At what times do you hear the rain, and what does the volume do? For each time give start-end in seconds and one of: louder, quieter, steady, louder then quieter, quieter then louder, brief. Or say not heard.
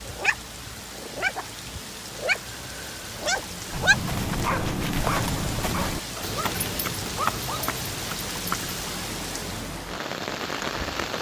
0.0-11.1 louder.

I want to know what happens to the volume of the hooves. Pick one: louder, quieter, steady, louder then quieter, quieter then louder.
quieter.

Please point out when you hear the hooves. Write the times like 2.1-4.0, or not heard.
3.7-8.9.